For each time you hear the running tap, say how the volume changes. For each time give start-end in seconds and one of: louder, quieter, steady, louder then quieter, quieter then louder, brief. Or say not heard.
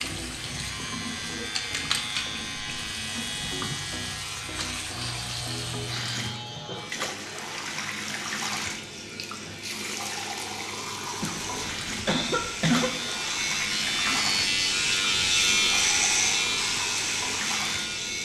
0.0-18.2 steady.